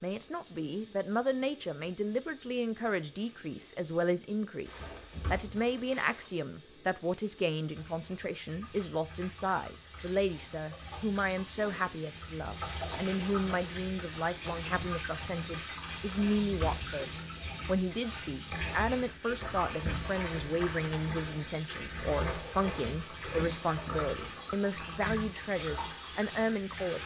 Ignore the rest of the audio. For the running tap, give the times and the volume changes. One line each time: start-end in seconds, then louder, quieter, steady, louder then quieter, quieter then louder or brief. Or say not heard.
0.0-27.0 louder.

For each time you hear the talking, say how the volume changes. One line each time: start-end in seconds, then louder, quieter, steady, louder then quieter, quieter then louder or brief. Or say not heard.
0.0-27.0 steady.